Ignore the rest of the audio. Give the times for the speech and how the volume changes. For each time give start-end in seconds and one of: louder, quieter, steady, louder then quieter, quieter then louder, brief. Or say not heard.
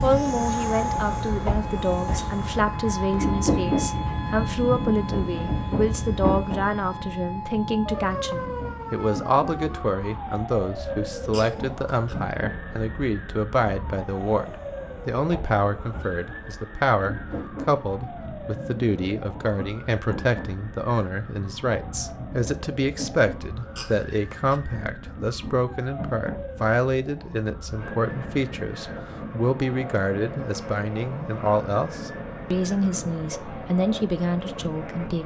0.0-35.2 steady.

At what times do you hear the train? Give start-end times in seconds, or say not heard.
0.0-35.2.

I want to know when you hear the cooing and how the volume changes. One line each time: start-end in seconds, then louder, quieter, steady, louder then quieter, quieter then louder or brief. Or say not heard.
not heard.